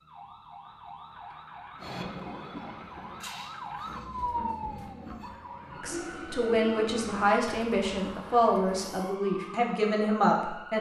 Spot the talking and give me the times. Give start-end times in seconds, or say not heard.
5.8-10.7.